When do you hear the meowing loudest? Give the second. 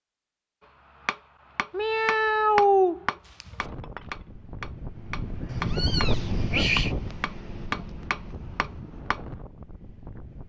3 s.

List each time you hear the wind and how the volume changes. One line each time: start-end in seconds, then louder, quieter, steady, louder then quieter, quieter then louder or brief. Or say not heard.
3.6-10.4 louder then quieter.